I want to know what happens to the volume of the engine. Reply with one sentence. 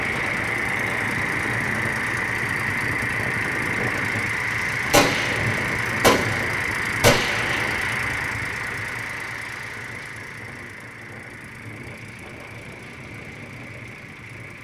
The loudness of the engine goes down.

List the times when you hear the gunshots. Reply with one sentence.
The gunshots can be heard from 4.9 to 8.2 s.